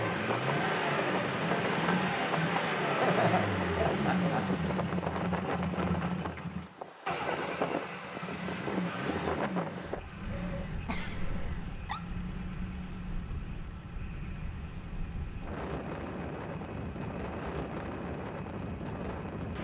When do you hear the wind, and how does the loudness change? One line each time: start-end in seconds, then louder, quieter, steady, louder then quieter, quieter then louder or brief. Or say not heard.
0.1-19.5 quieter then louder.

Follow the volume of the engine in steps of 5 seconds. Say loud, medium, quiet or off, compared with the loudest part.
loud, medium, quiet, quiet.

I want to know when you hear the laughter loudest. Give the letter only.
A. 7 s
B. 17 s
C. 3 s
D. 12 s
C.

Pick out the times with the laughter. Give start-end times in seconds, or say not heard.
3.0-4.5, 10.8-12.0.